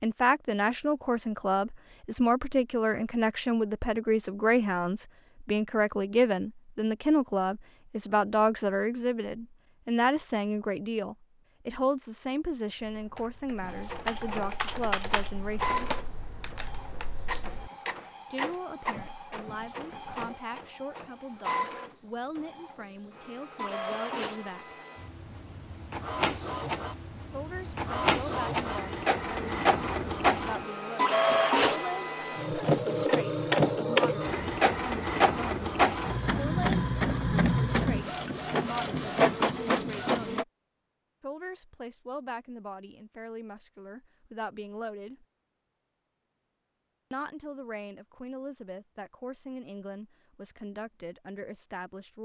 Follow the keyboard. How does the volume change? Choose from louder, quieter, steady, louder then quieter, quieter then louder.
louder then quieter.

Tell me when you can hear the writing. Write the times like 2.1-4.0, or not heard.
not heard.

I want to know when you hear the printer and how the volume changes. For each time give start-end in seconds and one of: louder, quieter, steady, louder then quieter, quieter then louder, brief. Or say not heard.
13.6-40.5 louder.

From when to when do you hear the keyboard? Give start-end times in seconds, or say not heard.
12.7-17.7.